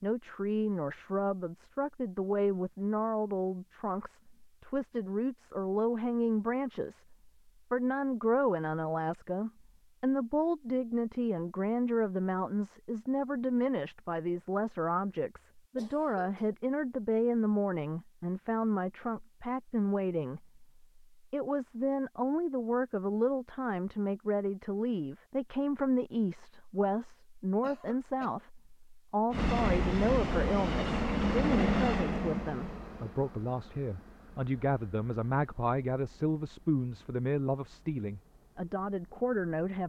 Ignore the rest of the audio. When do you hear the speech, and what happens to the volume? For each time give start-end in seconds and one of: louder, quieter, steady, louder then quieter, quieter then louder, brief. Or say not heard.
0.0-39.8 steady.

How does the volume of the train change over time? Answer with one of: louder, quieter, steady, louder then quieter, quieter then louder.
quieter.